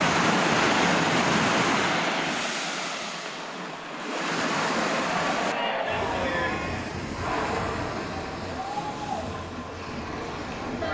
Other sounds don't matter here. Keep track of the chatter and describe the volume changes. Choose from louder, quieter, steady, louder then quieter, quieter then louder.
quieter.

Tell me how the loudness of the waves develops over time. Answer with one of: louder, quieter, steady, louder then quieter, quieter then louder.
quieter.